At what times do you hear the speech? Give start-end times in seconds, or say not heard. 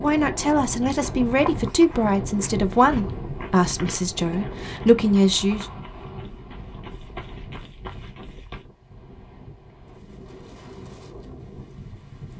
0.0-5.7.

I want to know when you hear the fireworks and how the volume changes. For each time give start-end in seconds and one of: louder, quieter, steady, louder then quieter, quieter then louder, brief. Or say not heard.
not heard.